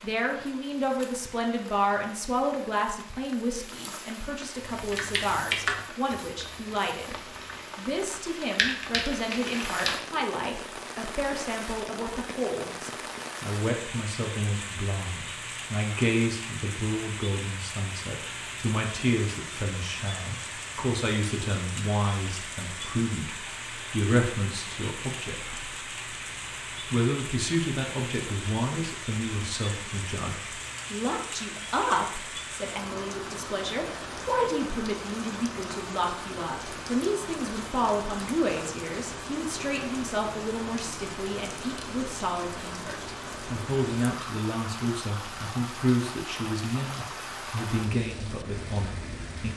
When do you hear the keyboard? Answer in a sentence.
You can hear the keyboard from 4.7 to 6.5 s and from 7.4 to 10.1 s.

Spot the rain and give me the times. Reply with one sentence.
You can hear the rain from 0.0 to 49.5 s.